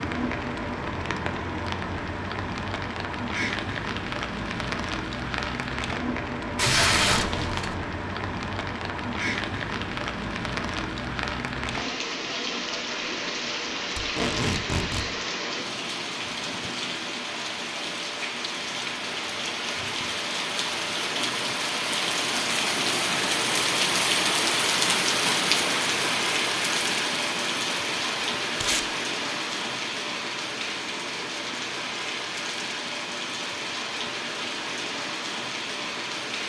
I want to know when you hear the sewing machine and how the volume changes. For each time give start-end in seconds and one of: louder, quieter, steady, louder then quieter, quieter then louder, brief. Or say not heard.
not heard.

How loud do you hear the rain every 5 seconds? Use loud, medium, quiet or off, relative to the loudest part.
medium, medium, medium, medium, loud, loud, medium, medium.